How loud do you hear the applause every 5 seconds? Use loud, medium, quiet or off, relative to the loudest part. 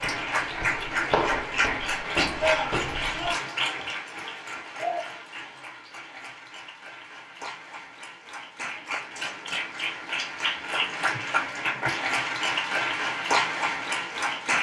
loud, medium, loud.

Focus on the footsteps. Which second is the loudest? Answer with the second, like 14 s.
1 s.